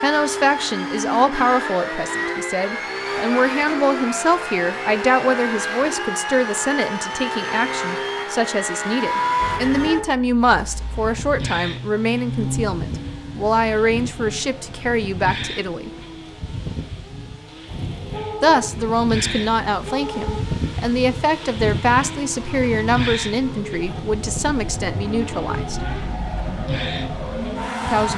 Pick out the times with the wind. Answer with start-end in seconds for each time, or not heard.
10.4-28.1.